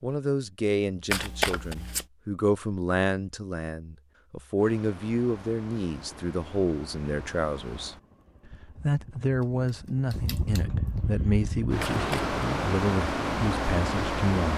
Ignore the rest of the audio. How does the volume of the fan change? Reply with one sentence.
The loudness of the fan goes up.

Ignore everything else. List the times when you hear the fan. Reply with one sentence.
The fan can be heard from 4.5 to 14.5 s.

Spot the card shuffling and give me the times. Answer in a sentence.
The card shuffling can be heard from 1.1 to 2.0 s and from 11.8 to 12.3 s.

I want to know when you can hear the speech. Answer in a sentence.
The speech can be heard from 0.0 to 8.0 s and from 8.8 to 14.5 s.